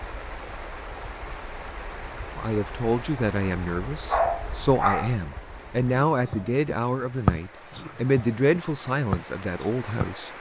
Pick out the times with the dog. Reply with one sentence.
The dog can be heard from 4.0 to 5.2 s.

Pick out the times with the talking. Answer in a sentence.
The talking can be heard from 2.4 to 10.3 s.